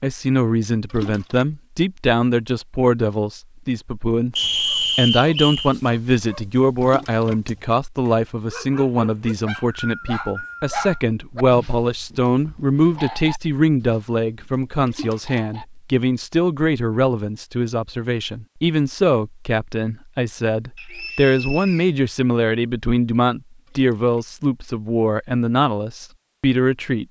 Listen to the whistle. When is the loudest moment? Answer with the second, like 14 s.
5 s.